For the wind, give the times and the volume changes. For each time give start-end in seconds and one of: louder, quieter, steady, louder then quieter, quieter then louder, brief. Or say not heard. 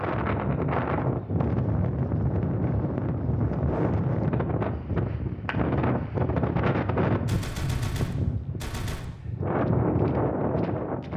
0.0-11.1 steady.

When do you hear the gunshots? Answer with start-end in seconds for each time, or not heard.
7.2-9.1.